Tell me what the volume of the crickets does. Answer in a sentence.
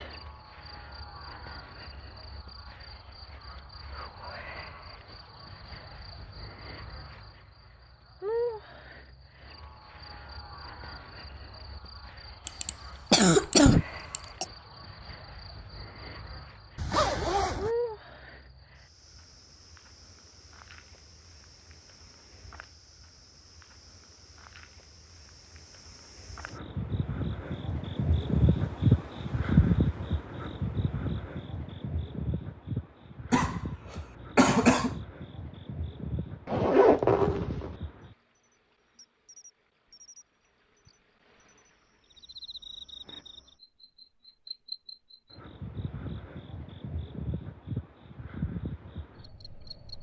The loudness of the crickets goes up, then down.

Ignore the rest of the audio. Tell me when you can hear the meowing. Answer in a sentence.
You can't hear the meowing here.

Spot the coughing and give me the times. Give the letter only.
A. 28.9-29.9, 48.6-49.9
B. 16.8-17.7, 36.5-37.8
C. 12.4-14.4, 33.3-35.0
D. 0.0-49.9
C.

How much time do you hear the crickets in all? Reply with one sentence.
You can hear the crickets for 50 seconds altogether.